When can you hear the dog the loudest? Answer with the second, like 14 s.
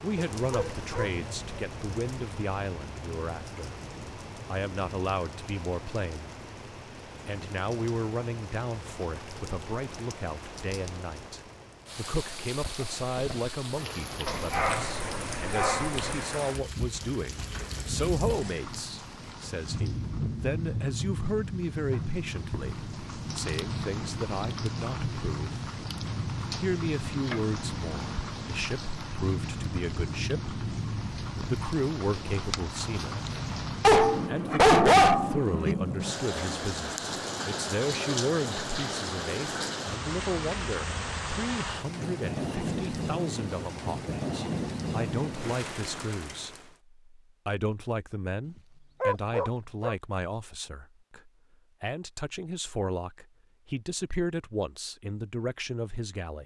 35 s.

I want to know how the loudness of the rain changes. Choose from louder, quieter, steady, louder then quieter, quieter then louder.
louder.